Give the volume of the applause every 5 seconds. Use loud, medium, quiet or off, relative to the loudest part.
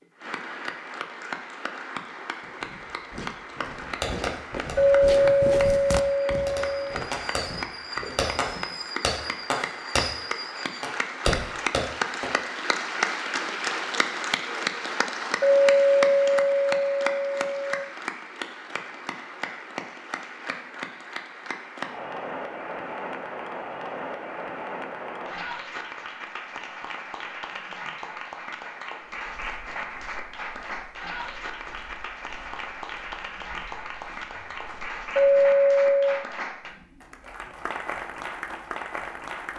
medium, medium, loud, loud, medium, medium, medium, medium.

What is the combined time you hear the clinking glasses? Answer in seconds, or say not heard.
6 s.